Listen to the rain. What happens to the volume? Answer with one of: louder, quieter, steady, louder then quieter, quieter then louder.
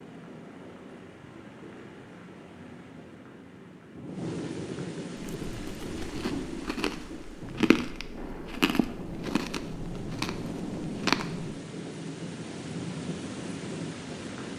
louder.